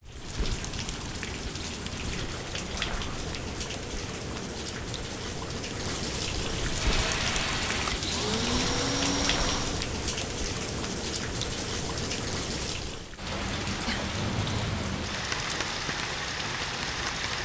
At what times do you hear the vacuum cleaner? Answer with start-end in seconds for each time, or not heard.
6.7-9.8.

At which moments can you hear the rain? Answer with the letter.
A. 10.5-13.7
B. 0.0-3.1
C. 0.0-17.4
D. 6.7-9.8
C.